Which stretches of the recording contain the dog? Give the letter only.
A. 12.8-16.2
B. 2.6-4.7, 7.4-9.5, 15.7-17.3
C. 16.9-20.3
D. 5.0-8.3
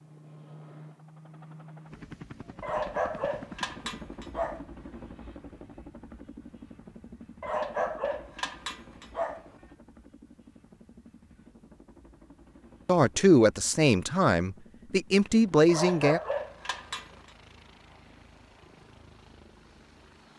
B.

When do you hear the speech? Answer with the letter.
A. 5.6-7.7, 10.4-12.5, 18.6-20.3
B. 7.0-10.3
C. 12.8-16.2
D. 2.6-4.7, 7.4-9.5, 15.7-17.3
C.